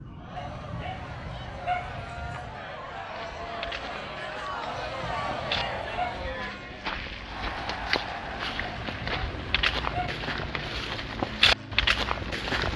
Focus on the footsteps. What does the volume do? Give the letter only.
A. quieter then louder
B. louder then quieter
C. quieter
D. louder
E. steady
D.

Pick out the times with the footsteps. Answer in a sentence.
The footsteps can be heard from 3.0 to 12.7 s.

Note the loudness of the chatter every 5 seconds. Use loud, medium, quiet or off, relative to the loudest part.
loud, loud, off.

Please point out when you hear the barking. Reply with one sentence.
The barking can be heard from 0.3 to 2.5 s, from 4.7 to 6.3 s and from 8.8 to 10.2 s.